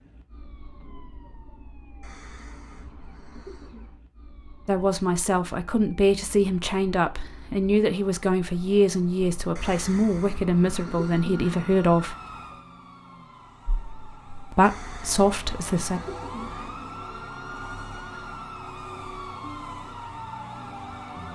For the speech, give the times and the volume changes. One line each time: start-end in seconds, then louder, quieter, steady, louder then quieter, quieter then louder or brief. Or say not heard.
4.7-12.2 steady
14.5-16.0 brief.